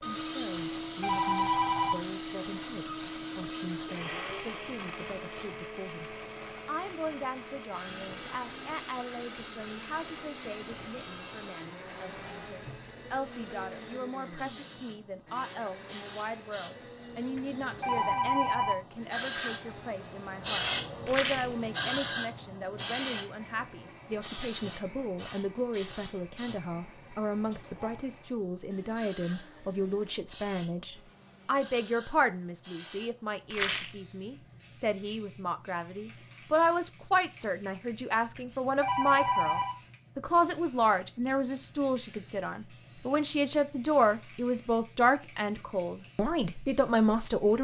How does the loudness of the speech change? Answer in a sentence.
The loudness of the speech goes up.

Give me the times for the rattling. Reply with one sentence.
You can hear the rattling from 21.1 to 21.6 s and from 33.5 to 34.0 s.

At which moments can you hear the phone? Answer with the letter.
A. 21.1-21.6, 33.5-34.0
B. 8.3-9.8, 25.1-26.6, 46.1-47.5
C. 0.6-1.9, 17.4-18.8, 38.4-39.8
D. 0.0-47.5
C.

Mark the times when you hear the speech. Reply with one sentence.
The speech can be heard from 0.0 to 47.5 s.